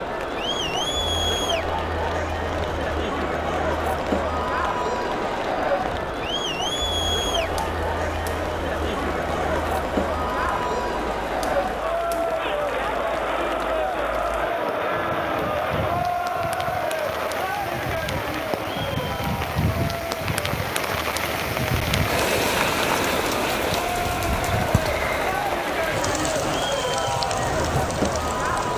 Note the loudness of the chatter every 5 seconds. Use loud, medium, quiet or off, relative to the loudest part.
loud, loud, loud, loud, medium, loud.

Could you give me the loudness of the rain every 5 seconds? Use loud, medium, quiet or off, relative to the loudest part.
quiet, quiet, quiet, medium, loud, medium.